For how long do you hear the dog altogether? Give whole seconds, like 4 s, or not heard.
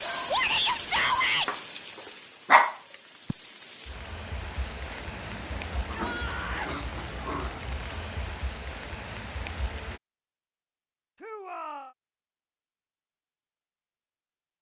6 s.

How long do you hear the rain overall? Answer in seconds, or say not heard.
10 s.